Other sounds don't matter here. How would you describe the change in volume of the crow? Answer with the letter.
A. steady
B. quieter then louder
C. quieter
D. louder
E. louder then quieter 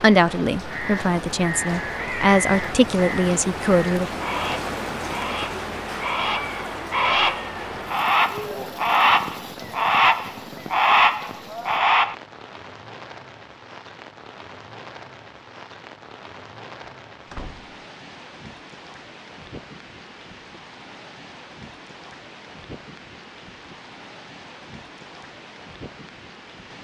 D.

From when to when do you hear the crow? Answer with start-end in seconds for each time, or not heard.
0.5-12.2.